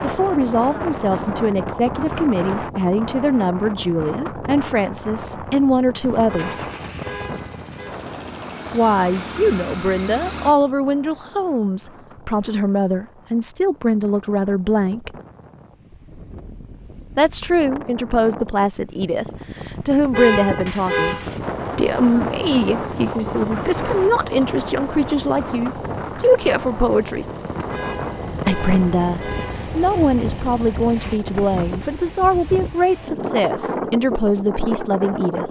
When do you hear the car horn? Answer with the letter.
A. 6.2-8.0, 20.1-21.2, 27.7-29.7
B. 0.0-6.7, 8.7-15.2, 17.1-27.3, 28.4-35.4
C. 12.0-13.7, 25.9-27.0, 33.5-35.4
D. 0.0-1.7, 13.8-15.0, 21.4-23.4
A.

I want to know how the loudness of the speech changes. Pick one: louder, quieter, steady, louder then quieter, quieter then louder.
steady.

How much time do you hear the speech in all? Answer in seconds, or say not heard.
30 s.